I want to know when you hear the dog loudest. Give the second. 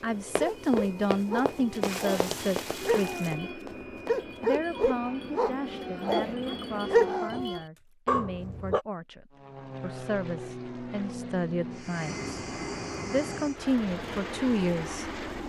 7 s.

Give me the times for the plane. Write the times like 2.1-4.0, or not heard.
0.0-7.5, 9.3-15.4.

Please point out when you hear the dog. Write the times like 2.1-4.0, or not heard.
0.3-8.8.